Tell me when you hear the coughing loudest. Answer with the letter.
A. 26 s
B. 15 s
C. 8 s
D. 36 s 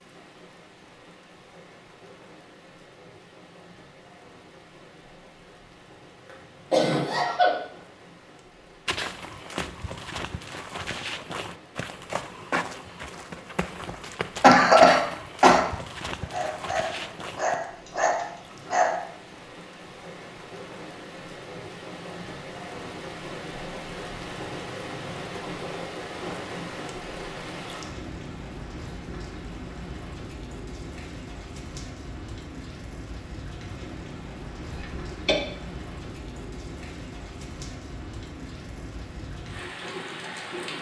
B.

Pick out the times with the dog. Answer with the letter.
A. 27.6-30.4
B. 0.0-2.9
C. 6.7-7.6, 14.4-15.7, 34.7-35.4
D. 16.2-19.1
D.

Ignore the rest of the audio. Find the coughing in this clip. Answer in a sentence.
The coughing can be heard from 6.7 to 7.6 s, from 14.4 to 15.7 s and from 34.7 to 35.4 s.